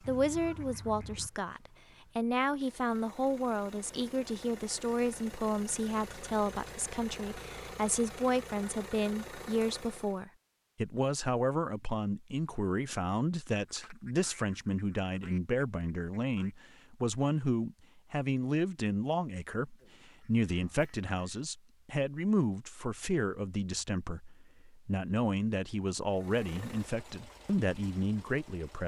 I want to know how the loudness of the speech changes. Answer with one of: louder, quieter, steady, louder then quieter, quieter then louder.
steady.